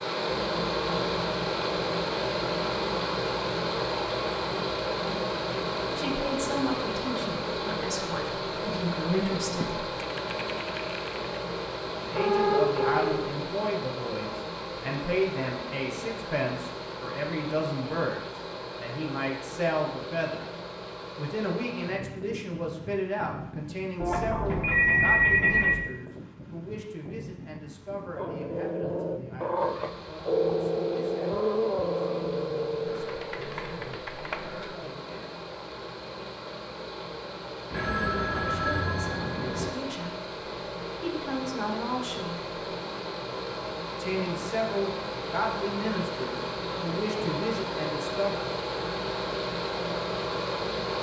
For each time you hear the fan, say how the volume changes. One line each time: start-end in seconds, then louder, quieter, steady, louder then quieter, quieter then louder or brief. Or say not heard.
0.0-50.9 quieter then louder.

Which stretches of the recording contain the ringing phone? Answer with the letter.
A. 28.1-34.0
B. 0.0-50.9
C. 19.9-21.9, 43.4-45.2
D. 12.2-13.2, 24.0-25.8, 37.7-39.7
D.